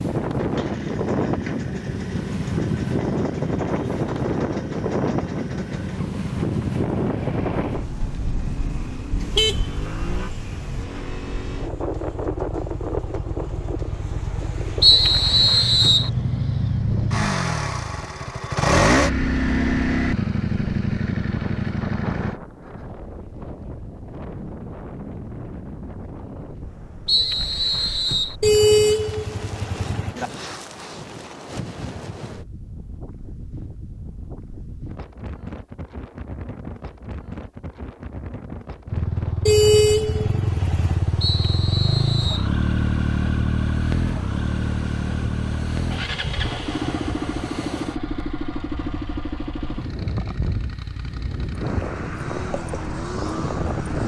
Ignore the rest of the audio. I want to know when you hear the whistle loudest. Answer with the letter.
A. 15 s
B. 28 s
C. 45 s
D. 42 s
A.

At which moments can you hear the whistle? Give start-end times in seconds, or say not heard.
14.8-16.1, 27.1-28.4, 41.2-42.5.